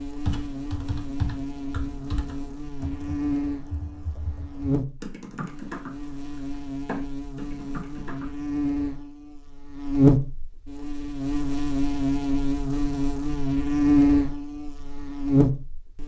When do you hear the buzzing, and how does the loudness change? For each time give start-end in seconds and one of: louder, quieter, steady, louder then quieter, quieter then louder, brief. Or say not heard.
0.0-16.0 louder.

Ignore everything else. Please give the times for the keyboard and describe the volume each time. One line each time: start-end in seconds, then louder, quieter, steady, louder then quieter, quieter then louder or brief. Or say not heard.
0.2-8.3 quieter then louder.